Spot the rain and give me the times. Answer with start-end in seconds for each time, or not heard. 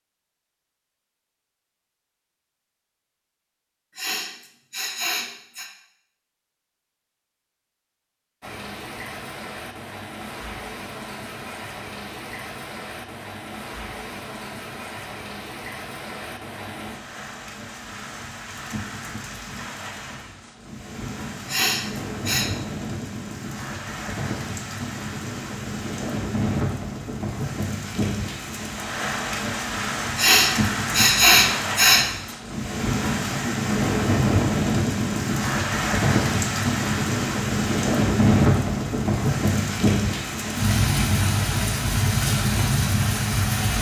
8.4-43.7.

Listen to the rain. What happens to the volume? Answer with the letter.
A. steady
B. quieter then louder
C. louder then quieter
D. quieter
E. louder
E.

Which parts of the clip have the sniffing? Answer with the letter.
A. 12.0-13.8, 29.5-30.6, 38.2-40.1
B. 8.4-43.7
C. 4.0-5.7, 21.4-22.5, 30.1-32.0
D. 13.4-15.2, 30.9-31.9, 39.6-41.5
C.